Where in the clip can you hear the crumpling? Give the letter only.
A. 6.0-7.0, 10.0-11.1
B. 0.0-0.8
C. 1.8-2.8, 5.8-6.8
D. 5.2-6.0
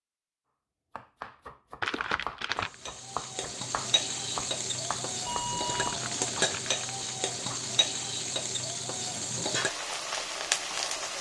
C.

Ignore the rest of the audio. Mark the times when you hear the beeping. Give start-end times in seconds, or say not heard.
5.2-6.0.